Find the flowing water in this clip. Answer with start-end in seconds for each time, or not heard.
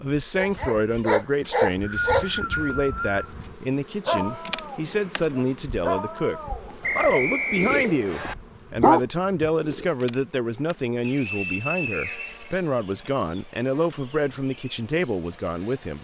not heard.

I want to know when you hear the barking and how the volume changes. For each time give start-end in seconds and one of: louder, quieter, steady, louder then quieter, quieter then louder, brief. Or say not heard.
0.3-8.0 quieter
8.8-9.8 brief.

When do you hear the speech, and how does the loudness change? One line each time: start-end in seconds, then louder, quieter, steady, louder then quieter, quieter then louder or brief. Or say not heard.
0.0-15.9 steady.